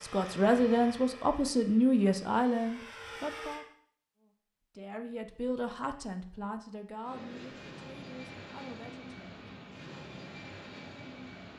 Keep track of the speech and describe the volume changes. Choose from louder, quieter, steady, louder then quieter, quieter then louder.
quieter.